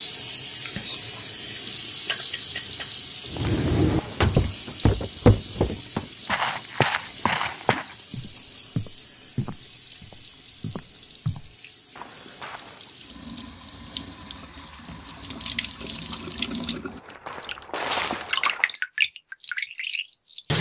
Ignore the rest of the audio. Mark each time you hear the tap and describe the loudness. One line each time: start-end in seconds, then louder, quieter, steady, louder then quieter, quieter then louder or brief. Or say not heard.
0.0-20.5 quieter then louder.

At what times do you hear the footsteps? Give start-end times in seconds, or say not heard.
3.3-12.9, 16.8-18.8.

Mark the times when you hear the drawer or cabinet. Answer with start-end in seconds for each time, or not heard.
3.5-4.5.